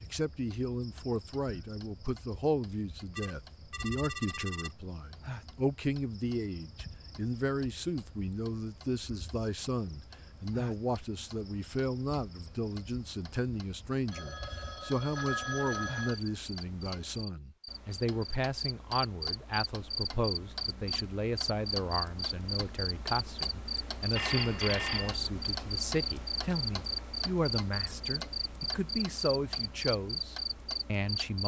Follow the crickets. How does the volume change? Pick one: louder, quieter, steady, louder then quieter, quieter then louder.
louder.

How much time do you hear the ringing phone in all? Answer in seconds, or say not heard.
5 s.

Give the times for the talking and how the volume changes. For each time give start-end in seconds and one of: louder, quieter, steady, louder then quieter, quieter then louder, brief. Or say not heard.
0.0-31.4 steady.